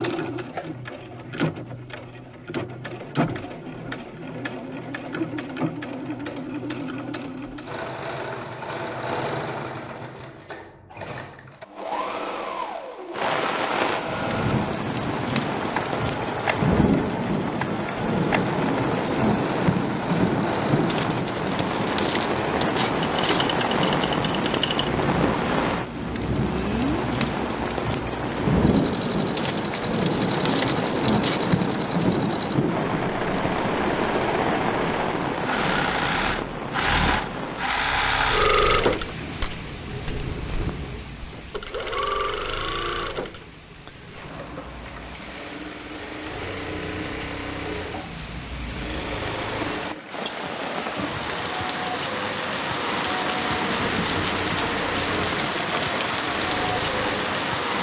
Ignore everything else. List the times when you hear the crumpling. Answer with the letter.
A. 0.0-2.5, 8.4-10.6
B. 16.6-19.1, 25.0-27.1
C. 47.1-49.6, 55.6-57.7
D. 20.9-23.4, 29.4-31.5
D.